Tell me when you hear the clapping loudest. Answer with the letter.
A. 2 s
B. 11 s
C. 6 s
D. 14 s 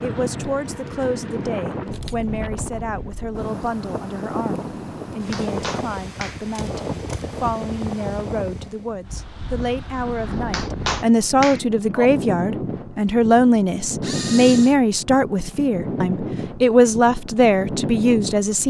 B.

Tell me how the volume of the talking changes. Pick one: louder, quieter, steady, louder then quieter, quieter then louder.
louder.